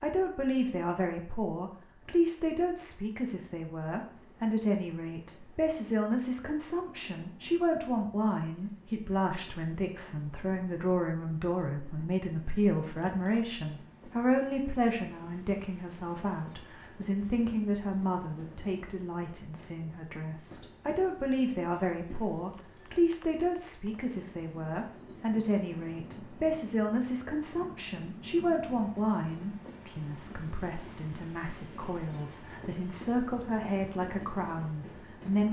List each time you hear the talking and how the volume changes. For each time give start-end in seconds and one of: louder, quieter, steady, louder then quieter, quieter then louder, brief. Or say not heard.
0.0-35.4 steady.